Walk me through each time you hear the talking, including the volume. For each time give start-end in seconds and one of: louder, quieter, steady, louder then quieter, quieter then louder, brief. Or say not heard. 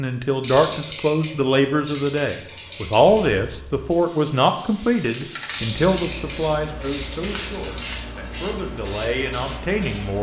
0.0-10.1 quieter.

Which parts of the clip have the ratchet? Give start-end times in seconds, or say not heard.
0.4-3.4, 5.5-8.1.